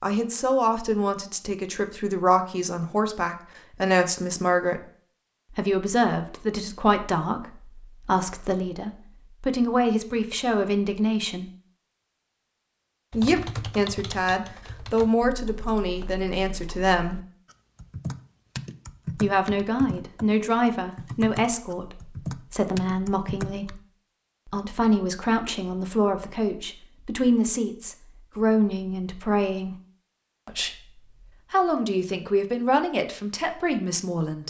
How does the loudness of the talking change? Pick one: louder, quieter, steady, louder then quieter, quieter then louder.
steady.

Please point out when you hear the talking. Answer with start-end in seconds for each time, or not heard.
0.0-4.8, 5.5-11.5, 13.1-17.2, 19.1-23.8, 24.4-29.8, 30.4-34.4.